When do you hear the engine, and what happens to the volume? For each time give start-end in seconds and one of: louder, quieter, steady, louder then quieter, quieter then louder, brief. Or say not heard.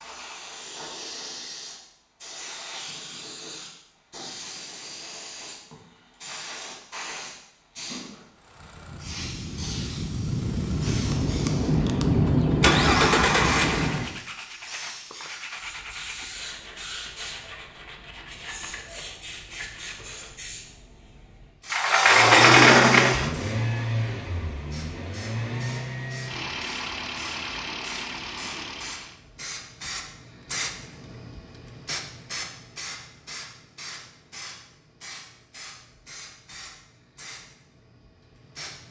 8.3-14.2 louder
22.1-29.2 quieter.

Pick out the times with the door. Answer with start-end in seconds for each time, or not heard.
21.7-23.3.